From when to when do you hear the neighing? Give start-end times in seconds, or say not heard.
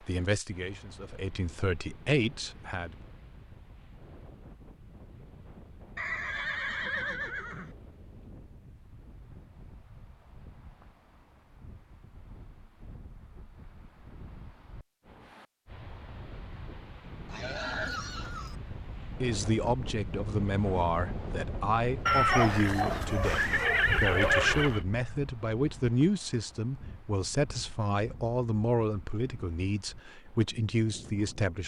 6.0-7.8, 17.2-18.6, 22.1-24.8.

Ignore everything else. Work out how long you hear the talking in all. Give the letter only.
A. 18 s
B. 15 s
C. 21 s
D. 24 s
B.